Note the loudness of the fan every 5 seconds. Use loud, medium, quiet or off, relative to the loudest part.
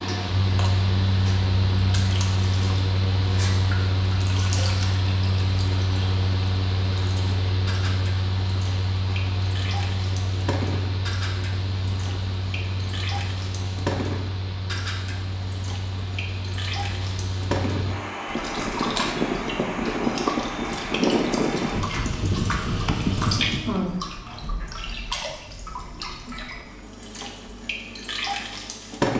loud, medium, medium, medium, loud, off.